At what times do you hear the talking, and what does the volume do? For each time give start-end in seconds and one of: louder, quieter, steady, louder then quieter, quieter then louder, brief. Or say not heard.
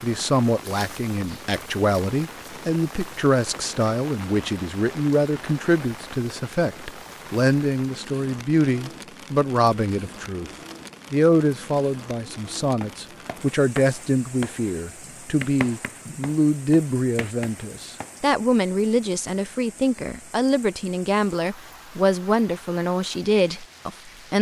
0.0-10.5 steady
11.1-24.3 steady.